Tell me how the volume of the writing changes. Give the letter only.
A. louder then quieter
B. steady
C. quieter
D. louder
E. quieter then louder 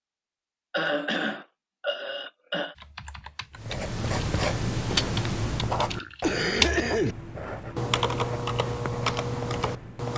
C.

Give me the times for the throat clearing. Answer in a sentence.
The throat clearing can be heard from 0.7 to 2.8 s and from 6.2 to 7.2 s.